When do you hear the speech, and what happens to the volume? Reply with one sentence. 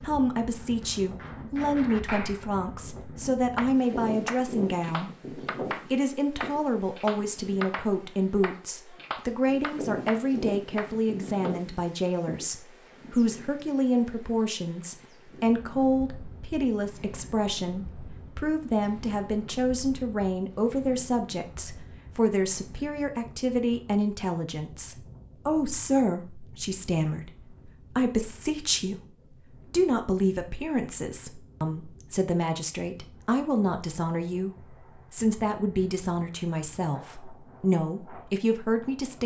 You can hear the speech from 0.0 to 39.2 s, at a steady volume.